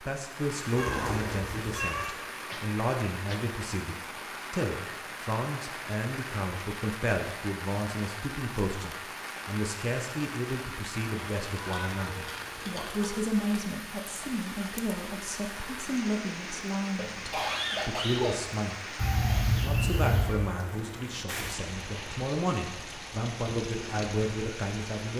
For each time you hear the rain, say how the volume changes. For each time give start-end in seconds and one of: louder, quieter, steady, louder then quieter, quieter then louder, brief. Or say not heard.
0.0-25.1 steady.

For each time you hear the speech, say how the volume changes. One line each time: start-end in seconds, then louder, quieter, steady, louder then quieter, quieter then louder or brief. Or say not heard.
0.0-18.9 steady
19.6-25.1 quieter then louder.